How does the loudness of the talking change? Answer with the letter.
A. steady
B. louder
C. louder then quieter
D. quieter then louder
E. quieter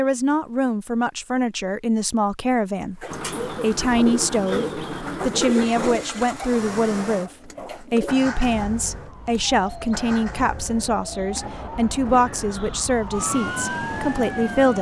A.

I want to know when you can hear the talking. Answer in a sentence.
You can hear the talking from 0.0 to 14.7 s.